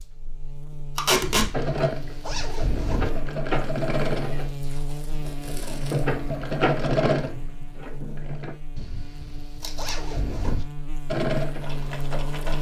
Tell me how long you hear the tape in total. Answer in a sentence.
You can hear the tape for 2 seconds altogether.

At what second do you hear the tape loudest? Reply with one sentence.
The volume of the tape peaks at 1 second.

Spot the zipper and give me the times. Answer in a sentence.
The zipper can be heard from 1.2 to 3.1 s and from 8.8 to 10.7 s.